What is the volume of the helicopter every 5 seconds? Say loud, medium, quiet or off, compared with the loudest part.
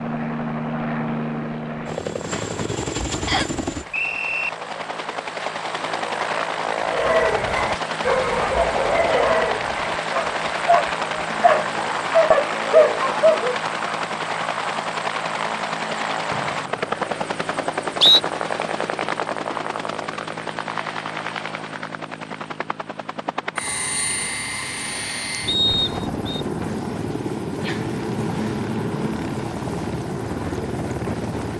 loud, loud, loud, loud, medium, loud, loud.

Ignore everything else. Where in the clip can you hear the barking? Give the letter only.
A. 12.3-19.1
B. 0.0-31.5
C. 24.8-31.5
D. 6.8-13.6
D.